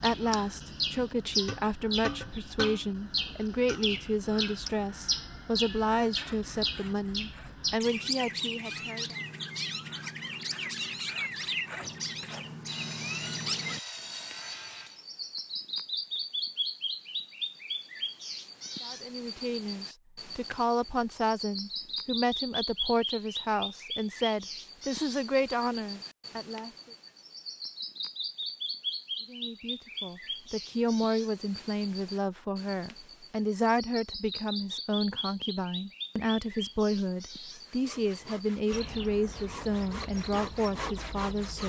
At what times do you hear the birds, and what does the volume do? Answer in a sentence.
The birds can be heard from 0.0 to 41.6 s, getting quieter.